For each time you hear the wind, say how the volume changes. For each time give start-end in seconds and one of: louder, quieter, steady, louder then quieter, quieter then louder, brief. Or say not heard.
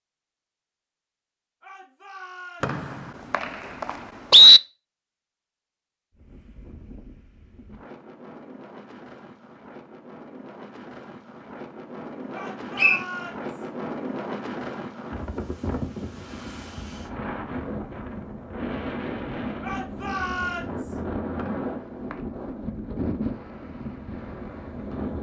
6.1-25.1 louder.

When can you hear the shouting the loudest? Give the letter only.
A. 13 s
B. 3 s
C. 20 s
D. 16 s
C.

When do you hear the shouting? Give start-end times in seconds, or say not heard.
1.6-2.8, 12.3-13.7, 19.6-21.0.